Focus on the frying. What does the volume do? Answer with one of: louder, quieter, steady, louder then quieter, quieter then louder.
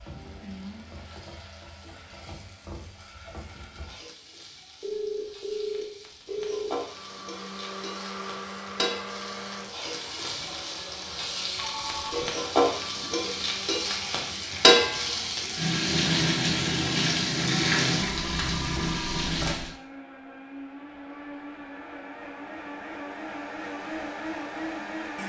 louder.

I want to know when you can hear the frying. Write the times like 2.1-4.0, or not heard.
0.0-19.8.